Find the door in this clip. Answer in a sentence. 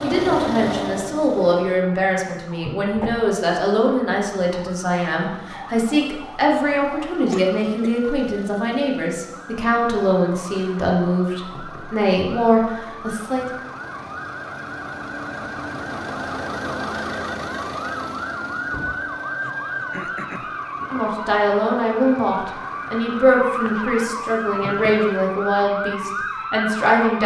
The door can be heard from 2.6 to 3.2 s and from 18.7 to 19.1 s.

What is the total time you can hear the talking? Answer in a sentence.
The talking can be heard for 20 seconds in total.